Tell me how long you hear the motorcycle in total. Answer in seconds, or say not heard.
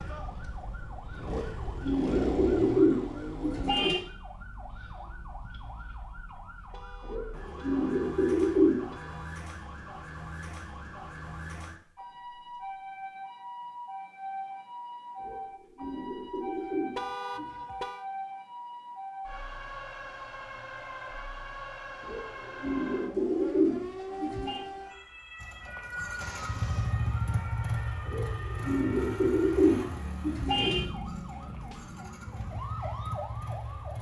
12 s.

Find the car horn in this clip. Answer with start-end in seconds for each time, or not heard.
6.7-9.4, 16.9-18.1, 26.2-26.9.